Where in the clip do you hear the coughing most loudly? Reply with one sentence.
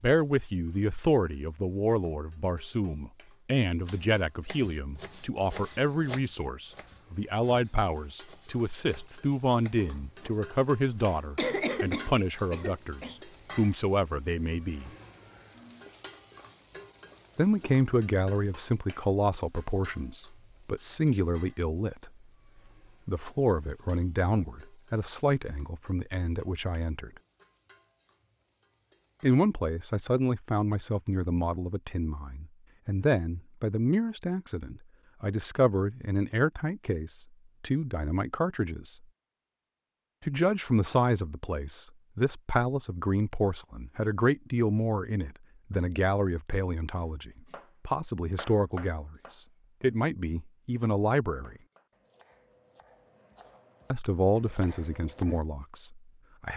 The loudest moment of the coughing is at 12 seconds.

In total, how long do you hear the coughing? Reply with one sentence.
You can hear the coughing for 2 seconds altogether.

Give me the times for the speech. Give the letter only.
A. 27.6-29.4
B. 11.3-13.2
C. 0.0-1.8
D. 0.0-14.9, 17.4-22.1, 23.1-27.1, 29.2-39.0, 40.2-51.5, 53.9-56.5
D.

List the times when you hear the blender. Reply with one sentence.
The blender can't be heard in this clip.